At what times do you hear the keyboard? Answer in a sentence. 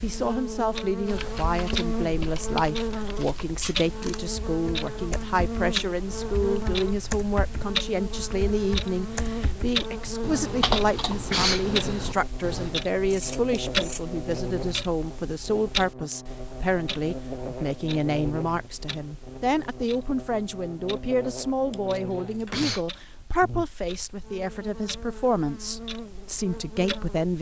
You can hear the keyboard from 1.1 to 12.8 s.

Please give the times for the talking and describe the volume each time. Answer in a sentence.
You can hear the talking from 0.0 to 27.3 s, at a steady volume.